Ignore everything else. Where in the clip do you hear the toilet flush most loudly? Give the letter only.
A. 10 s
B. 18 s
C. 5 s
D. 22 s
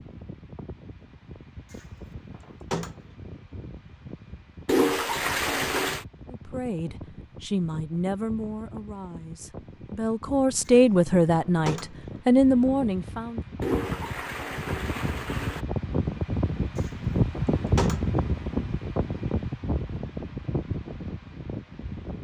C.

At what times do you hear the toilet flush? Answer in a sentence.
The toilet flush can be heard from 4.7 to 6.0 s and from 13.6 to 15.7 s.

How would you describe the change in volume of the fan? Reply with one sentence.
The loudness of the fan goes up.